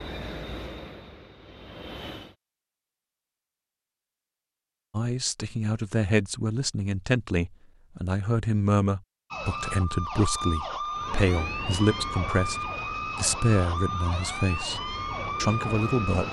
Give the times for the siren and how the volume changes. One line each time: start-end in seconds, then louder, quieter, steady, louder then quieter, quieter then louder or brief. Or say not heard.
9.3-16.2 steady.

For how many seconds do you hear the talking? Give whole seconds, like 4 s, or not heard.
11 s.